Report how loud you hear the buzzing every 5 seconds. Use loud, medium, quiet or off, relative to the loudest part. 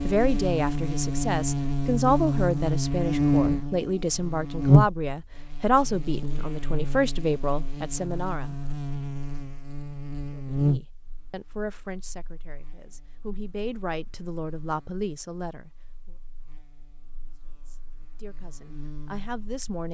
loud, quiet, medium, quiet.